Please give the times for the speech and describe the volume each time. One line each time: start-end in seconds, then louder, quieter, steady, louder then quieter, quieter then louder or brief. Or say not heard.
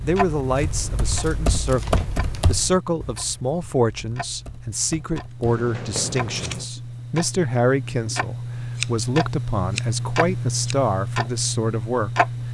0.0-12.2 steady.